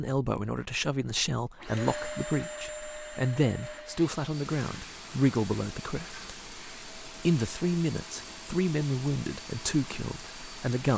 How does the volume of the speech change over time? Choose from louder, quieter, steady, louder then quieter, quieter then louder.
steady.